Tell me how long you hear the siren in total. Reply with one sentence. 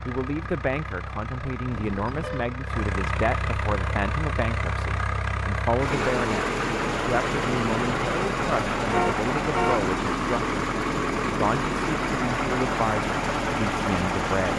You can't hear the siren here.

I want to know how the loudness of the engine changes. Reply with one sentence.
The loudness of the engine goes up.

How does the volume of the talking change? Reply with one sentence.
The loudness of the talking stays about the same.